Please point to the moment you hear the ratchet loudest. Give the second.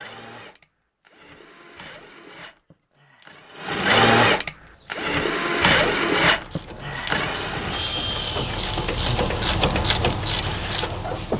10 s.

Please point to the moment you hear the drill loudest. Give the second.
4 s.